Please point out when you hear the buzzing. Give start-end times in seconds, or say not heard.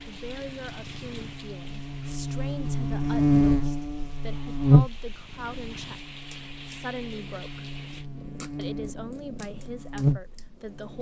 0.0-10.9.